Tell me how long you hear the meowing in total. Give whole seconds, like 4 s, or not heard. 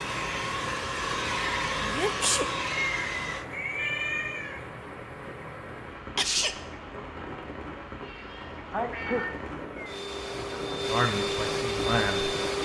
3 s.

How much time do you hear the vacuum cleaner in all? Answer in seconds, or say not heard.
6 s.